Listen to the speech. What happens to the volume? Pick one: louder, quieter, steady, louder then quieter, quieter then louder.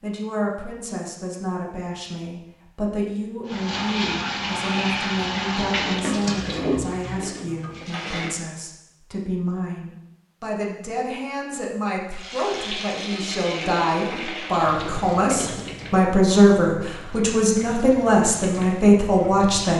louder.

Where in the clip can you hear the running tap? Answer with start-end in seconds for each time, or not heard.
3.5-8.3, 12.1-19.7.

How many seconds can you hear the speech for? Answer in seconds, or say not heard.
20 s.